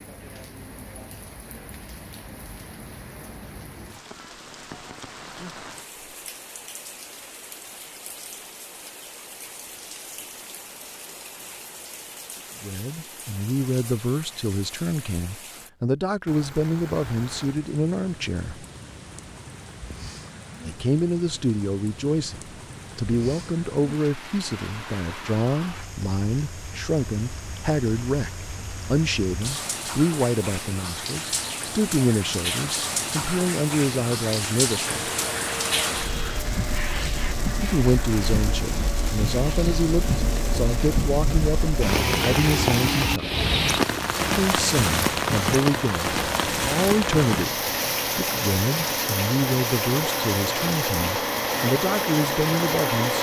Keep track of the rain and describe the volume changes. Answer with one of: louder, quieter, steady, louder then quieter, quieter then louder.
louder.